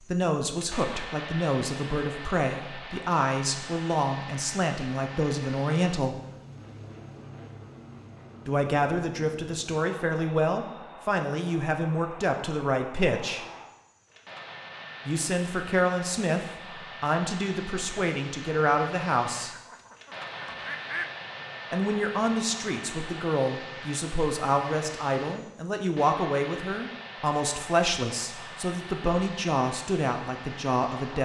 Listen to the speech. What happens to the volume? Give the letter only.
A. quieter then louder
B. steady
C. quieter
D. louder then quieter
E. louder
B.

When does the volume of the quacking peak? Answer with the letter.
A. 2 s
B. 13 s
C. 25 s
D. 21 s
D.